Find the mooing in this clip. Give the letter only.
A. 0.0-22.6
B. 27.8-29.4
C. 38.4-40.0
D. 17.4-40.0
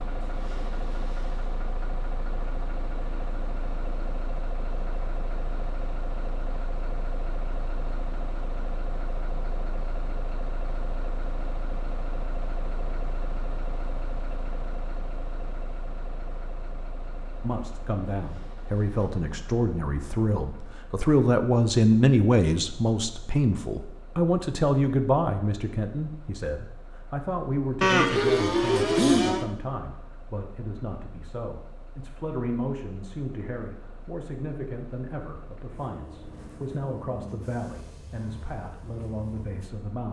B.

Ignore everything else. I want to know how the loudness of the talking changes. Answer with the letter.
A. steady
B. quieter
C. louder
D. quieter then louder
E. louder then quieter
B.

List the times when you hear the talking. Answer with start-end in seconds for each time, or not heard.
17.4-40.0.